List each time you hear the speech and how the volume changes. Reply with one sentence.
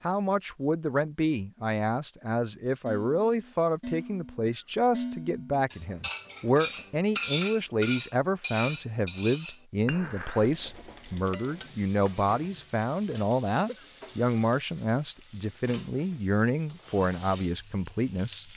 The speech can be heard from 0.0 to 18.4 s, at a steady volume.